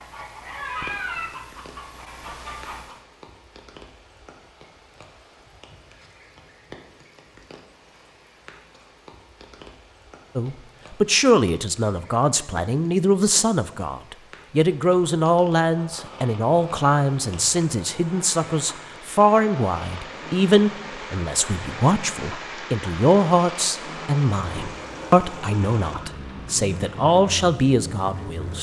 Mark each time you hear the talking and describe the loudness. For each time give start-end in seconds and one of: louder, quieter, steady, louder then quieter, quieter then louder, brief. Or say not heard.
10.3-28.5 steady.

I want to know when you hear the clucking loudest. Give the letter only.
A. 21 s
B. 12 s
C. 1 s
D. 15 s
C.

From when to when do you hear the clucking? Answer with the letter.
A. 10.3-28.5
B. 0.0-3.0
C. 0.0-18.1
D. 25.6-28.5
B.